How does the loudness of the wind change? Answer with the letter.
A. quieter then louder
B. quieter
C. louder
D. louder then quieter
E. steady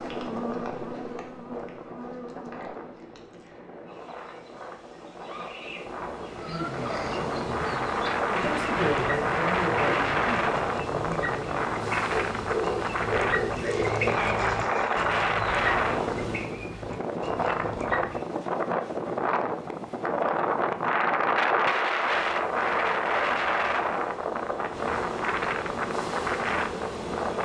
C.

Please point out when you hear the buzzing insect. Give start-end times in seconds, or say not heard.
0.0-16.6, 21.9-27.4.